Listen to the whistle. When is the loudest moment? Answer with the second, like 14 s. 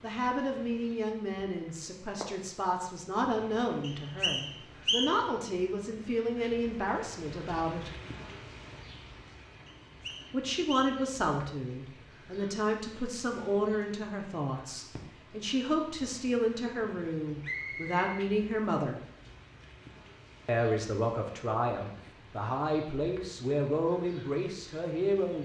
5 s.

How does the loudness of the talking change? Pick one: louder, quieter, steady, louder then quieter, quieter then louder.
steady.